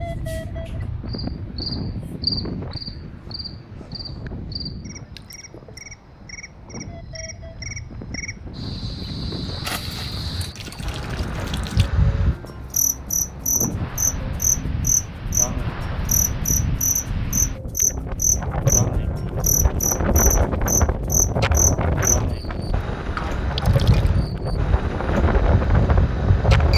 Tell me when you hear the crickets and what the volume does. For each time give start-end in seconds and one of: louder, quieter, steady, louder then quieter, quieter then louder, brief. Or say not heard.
0.0-26.7 louder.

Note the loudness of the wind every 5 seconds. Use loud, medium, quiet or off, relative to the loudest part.
medium, quiet, medium, loud, loud, loud.